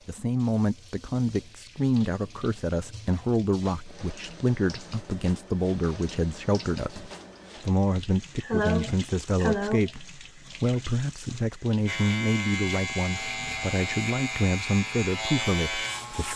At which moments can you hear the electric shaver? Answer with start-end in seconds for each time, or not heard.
11.8-16.3.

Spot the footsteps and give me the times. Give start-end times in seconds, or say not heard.
not heard.